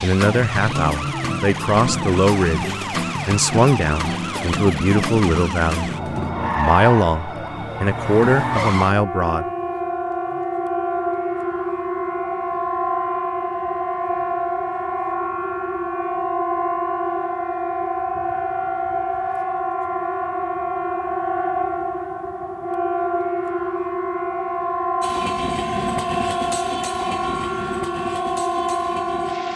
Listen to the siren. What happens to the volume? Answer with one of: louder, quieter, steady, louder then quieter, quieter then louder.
steady.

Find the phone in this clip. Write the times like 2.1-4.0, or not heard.
not heard.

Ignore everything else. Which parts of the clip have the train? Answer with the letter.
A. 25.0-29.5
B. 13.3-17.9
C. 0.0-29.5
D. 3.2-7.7
A.